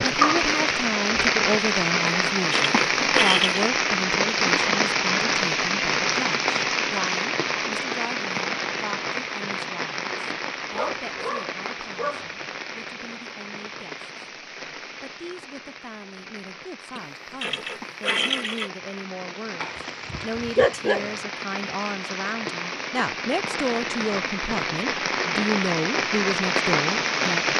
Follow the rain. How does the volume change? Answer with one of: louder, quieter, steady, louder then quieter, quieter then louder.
quieter then louder.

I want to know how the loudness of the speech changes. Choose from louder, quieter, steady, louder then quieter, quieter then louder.
quieter then louder.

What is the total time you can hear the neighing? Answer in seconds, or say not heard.
3 s.